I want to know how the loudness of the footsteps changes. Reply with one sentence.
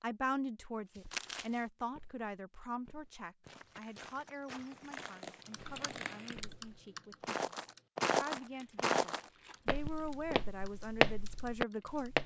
The loudness of the footsteps goes up.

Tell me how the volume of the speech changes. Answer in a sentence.
The loudness of the speech goes down, then up.